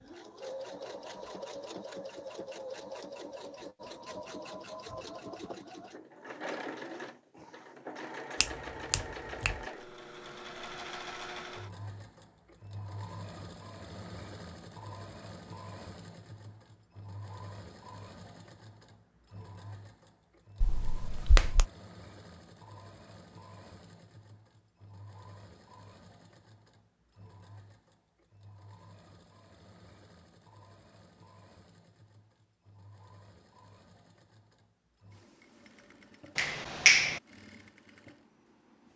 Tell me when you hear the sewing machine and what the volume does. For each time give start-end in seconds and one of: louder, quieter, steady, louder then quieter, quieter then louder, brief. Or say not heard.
0.0-38.9 quieter.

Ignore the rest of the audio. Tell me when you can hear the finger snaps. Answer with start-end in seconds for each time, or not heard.
8.4-9.6, 20.6-21.6, 36.4-37.2.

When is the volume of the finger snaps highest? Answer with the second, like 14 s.
37 s.